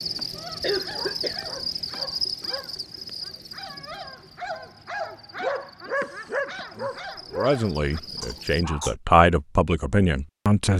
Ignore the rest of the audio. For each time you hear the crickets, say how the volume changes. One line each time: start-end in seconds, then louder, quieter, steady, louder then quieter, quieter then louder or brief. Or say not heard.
0.0-8.7 quieter then louder.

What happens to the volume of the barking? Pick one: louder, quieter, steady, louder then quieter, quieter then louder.
louder then quieter.